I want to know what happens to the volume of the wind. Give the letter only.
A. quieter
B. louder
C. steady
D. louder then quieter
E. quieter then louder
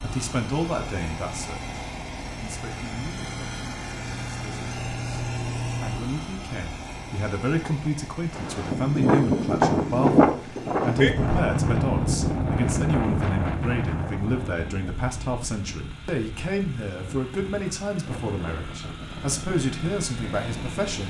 A.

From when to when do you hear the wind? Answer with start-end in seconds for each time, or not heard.
8.3-21.0.